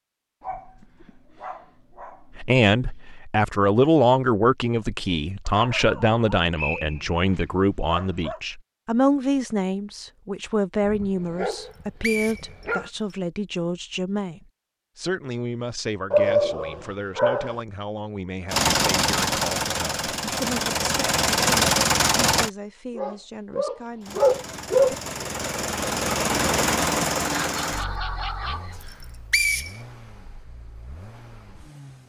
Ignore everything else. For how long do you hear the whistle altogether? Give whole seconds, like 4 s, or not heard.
3 s.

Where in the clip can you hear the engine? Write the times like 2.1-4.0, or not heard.
18.5-22.5, 24.0-32.0.